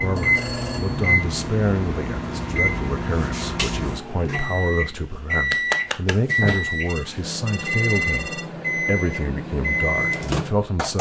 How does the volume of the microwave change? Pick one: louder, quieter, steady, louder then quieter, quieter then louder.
steady.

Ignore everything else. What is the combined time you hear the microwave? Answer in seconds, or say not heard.
11 s.